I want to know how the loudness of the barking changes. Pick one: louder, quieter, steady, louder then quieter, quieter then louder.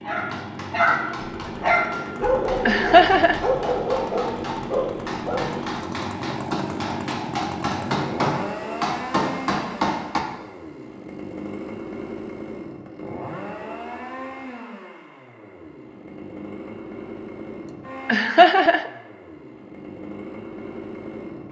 quieter.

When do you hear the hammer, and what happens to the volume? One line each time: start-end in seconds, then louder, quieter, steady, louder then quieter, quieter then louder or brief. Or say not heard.
0.1-10.2 louder.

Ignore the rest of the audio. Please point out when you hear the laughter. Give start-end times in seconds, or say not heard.
2.6-3.4, 18.1-18.9.